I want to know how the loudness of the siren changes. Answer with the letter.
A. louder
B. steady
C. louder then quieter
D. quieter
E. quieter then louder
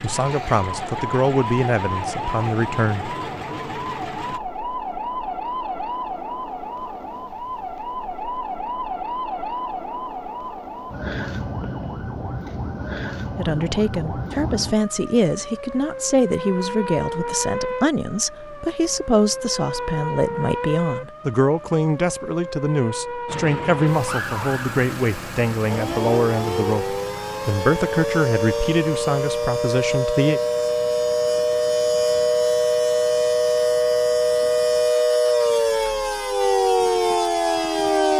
A.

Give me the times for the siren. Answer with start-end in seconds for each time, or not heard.
0.0-38.1.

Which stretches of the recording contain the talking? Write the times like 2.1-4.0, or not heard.
0.0-3.1, 13.3-30.4.